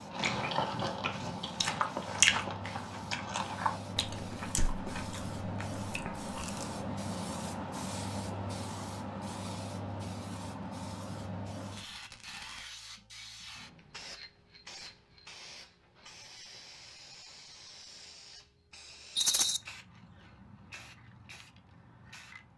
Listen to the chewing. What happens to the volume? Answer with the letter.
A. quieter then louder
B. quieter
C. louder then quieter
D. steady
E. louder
C.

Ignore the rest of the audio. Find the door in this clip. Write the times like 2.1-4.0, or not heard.
not heard.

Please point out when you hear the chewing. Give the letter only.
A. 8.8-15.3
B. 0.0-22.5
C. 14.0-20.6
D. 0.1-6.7
D.